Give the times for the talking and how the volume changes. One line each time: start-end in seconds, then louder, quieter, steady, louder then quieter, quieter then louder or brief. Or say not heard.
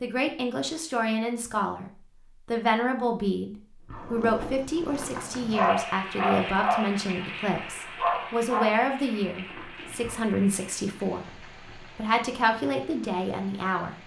0.0-13.9 steady.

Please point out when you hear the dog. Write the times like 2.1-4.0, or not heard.
3.9-7.0, 8.0-10.3.